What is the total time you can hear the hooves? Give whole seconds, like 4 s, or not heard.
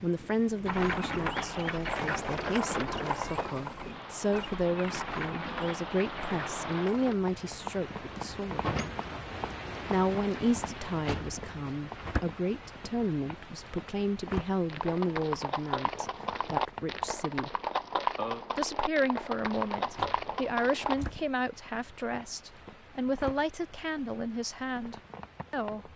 13 s.